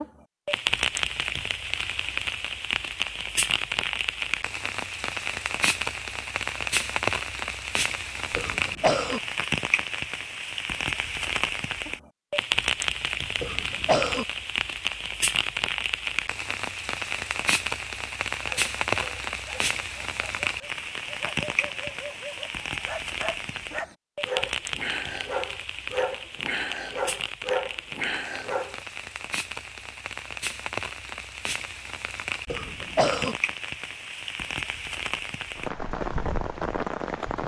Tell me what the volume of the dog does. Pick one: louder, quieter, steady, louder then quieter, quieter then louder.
louder.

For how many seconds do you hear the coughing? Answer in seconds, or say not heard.
3 s.